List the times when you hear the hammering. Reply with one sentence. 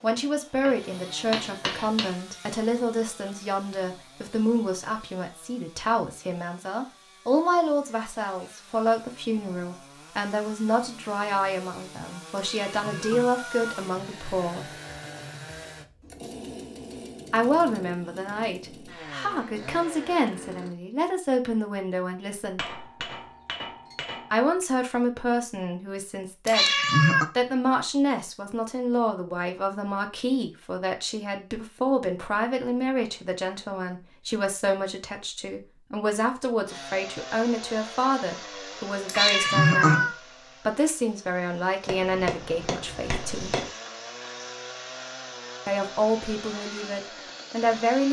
You can hear the hammering from 0.7 to 2.2 s, from 22.6 to 24.3 s and from 41.9 to 43.7 s.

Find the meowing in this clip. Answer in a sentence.
The meowing can be heard from 12.3 to 13.8 s, from 26.4 to 27.2 s and from 39.0 to 40.1 s.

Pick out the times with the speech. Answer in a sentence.
The speech can be heard from 0.0 to 14.8 s, from 17.3 to 22.7 s, from 24.3 to 26.7 s, from 27.4 to 43.6 s and from 45.6 to 48.0 s.